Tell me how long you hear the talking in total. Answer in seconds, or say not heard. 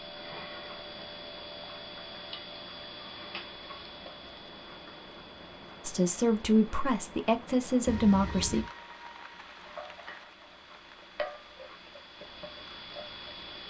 3 s.